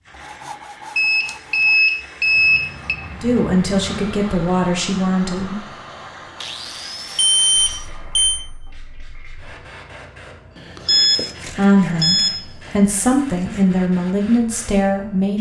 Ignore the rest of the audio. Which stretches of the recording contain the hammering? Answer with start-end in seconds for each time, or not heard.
not heard.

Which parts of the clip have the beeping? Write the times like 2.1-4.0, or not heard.
0.9-3.0, 7.2-8.4, 10.6-12.7.